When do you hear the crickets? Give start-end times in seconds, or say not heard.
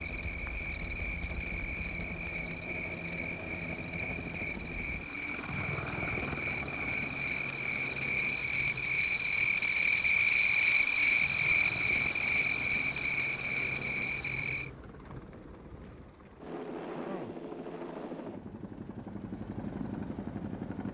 0.0-14.7.